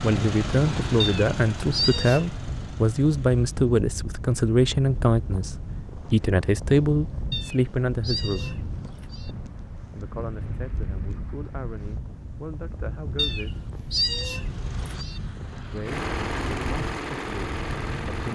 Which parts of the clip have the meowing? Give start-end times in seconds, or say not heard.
1.0-2.2, 7.3-9.3, 13.2-15.2.